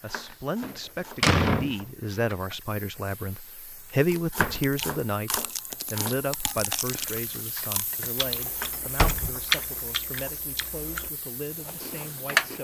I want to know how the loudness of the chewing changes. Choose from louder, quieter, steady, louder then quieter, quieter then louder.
louder then quieter.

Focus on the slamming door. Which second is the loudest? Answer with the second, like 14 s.
1 s.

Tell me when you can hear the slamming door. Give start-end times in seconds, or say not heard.
0.6-1.8, 4.3-4.8, 8.7-9.3.